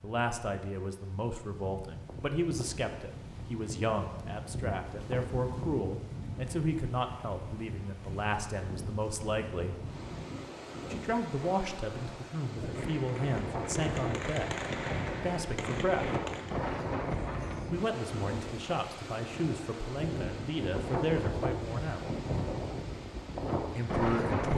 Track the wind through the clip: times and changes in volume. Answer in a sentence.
The wind can be heard from 0.0 to 24.5 s, getting louder.